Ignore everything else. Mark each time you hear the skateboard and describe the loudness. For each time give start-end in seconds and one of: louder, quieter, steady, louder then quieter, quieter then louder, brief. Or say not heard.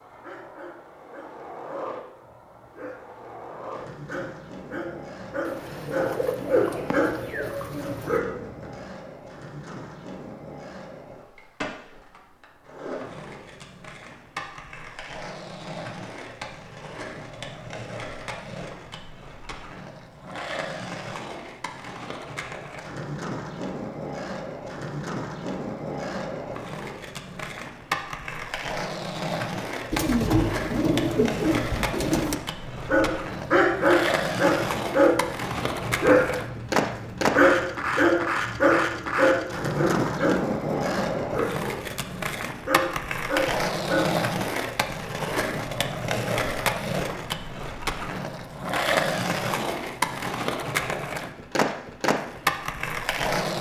0.0-53.5 louder.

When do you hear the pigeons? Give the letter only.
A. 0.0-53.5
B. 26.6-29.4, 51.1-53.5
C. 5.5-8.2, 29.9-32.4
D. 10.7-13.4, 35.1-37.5
C.